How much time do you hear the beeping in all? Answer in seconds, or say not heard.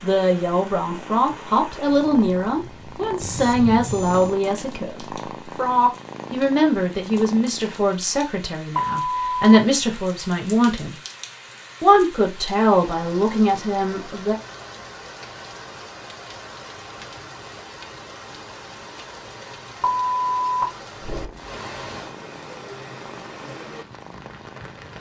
3 s.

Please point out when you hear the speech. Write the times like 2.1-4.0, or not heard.
0.0-10.9, 11.8-14.3.